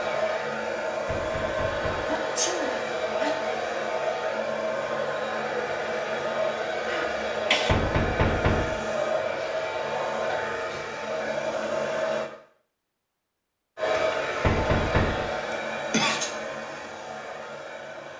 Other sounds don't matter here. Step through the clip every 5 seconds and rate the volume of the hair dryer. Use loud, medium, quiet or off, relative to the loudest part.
loud, loud, loud, medium.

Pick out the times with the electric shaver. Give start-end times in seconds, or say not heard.
not heard.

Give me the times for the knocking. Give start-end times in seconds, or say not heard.
1.1-2.1, 7.7-8.8, 14.4-15.2.